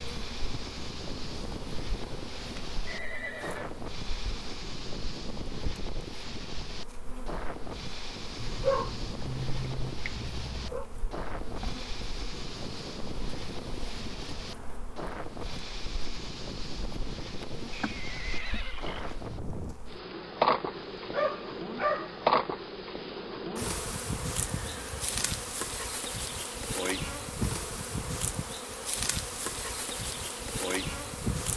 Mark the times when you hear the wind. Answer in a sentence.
You can hear the wind from 0.0 to 19.8 s.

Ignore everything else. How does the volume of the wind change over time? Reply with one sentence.
The volume of the wind stays about the same.